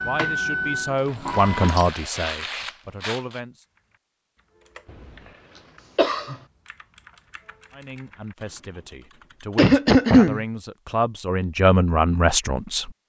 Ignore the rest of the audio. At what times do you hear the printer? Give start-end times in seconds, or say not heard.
0.0-1.8.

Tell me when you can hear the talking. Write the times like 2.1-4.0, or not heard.
0.0-3.6, 7.7-12.9.